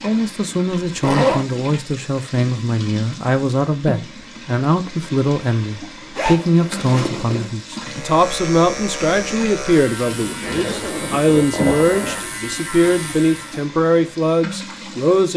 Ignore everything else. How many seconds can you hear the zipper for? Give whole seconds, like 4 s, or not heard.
4 s.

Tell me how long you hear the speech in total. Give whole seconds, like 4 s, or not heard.
15 s.